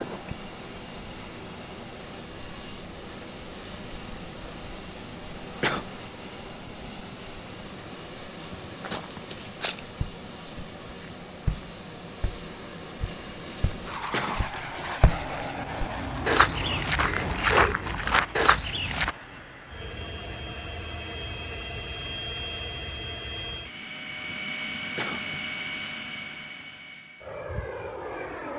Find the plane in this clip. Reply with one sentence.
The plane can be heard from 0.0 to 28.5 s.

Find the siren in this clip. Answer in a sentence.
You can't hear the siren here.